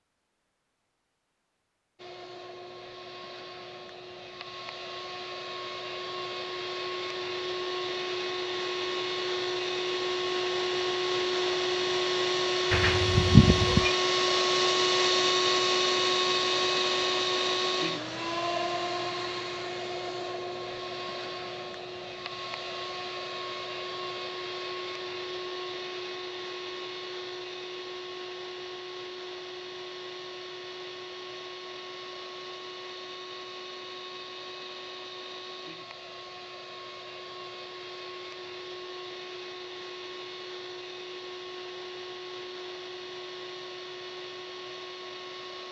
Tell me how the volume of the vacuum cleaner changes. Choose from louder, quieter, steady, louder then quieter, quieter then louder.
louder then quieter.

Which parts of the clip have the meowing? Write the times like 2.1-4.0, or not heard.
12.7-13.9.